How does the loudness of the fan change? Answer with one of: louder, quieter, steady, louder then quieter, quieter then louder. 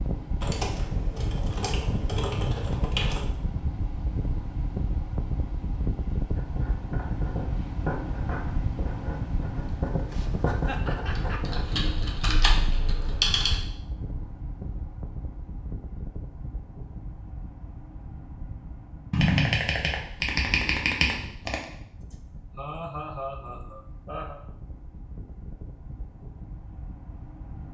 quieter.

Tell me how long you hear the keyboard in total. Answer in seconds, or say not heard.
8 s.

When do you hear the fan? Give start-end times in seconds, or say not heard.
0.0-27.6.